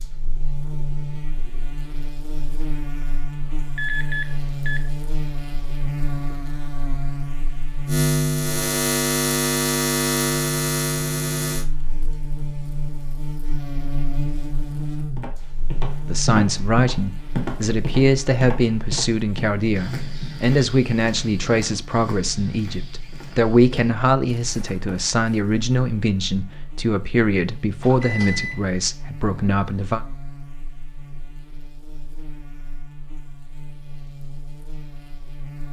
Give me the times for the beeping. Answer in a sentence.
The beeping can be heard from 3.8 to 4.9 s and from 27.8 to 28.6 s.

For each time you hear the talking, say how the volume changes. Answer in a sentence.
You can hear the talking from 16.1 to 30.0 s, at a steady volume.